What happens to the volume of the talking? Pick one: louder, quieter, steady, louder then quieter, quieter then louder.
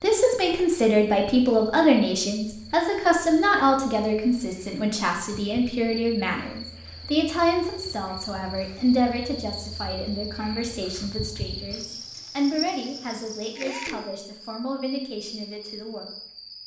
quieter.